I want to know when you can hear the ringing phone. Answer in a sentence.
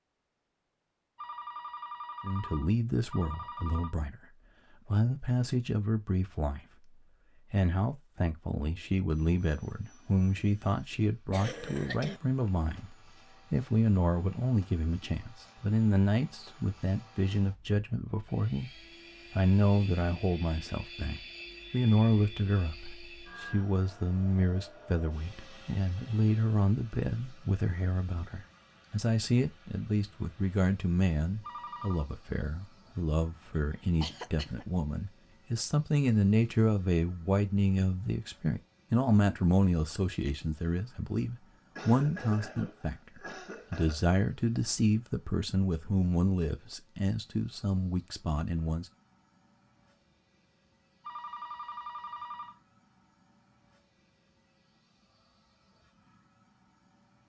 The ringing phone can be heard from 1.1 to 4.0 s, from 31.4 to 32.1 s and from 51.0 to 52.6 s.